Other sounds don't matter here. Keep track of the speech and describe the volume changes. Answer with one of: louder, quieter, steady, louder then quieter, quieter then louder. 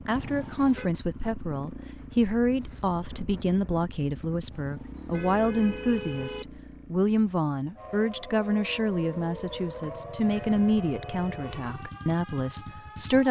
steady.